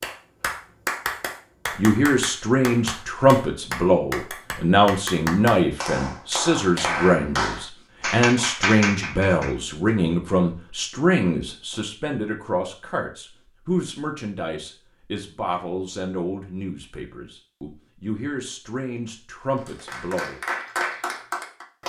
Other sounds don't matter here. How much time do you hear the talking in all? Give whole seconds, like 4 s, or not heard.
19 s.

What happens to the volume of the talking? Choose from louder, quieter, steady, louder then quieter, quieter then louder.
quieter.